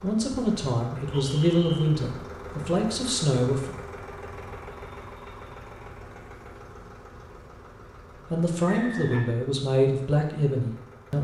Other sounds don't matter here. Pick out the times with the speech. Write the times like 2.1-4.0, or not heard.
0.0-3.7, 8.3-11.1.